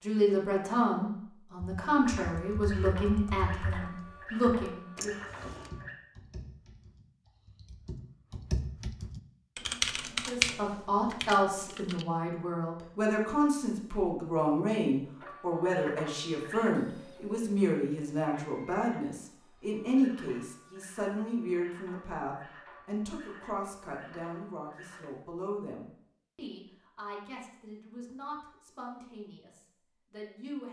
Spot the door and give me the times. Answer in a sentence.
The door can be heard from 5.0 to 5.7 s.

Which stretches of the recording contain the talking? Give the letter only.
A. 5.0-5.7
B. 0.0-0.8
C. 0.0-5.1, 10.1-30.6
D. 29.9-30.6
C.